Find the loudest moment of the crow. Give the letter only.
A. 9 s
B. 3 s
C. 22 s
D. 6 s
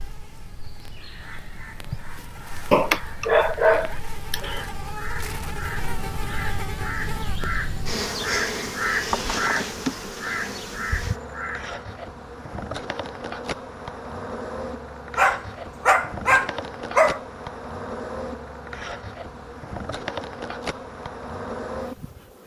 A.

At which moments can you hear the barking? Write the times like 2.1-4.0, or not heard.
2.7-4.6, 15.2-17.2.